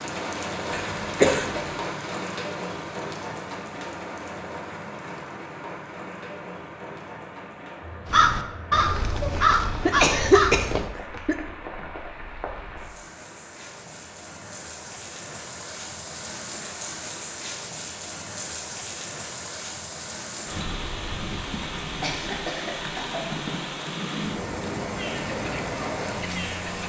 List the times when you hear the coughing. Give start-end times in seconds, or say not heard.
0.7-1.7, 9.3-11.3, 22.0-23.4.